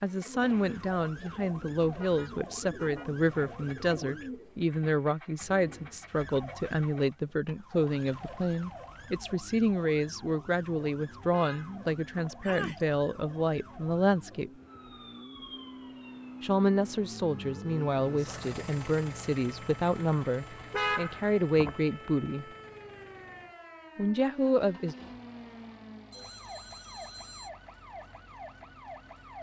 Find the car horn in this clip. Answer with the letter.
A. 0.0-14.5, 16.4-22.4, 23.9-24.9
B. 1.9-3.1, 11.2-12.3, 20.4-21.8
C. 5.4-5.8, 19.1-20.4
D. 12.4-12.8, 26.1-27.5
B.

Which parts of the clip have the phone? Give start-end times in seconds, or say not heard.
12.4-12.8, 26.1-27.5.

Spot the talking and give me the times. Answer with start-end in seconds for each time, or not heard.
0.0-14.5, 16.4-22.4, 23.9-24.9.